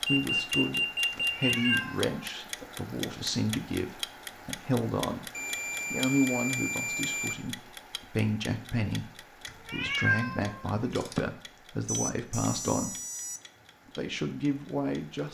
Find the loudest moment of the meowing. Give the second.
10 s.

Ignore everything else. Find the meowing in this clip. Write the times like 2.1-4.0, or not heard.
1.1-2.1, 9.4-11.2.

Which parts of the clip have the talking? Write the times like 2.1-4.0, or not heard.
0.0-5.3, 5.9-12.9, 13.9-15.2.